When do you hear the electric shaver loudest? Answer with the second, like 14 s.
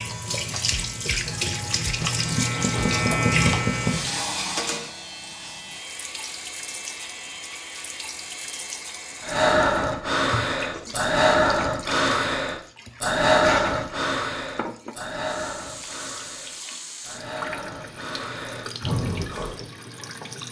3 s.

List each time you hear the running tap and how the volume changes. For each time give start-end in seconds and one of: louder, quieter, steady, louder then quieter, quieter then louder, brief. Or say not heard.
0.0-20.4 quieter.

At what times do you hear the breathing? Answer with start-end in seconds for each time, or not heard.
9.2-19.6.